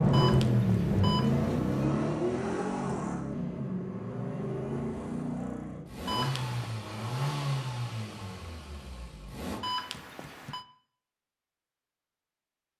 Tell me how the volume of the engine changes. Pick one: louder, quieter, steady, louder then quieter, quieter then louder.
quieter.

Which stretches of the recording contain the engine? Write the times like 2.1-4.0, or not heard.
0.0-9.7.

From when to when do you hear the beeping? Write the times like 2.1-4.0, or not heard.
0.1-1.8, 6.0-6.8, 9.6-10.7.